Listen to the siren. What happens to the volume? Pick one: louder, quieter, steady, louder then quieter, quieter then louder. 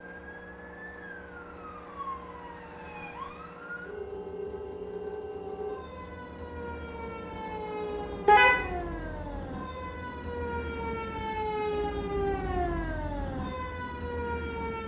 louder.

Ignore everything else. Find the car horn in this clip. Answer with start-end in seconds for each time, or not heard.
8.2-8.7.